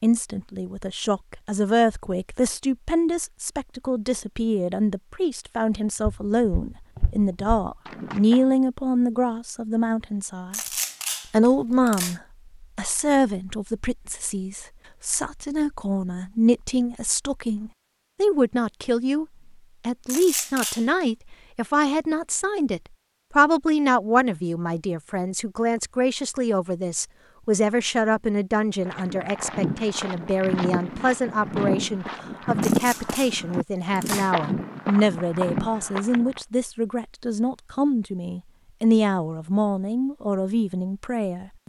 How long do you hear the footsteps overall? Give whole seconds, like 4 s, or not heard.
10 s.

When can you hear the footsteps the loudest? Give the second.
33 s.